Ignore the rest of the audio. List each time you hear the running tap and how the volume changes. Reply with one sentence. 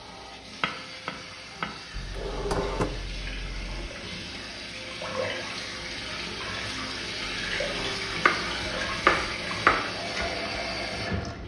The running tap can be heard from 0.0 to 11.4 s, getting louder.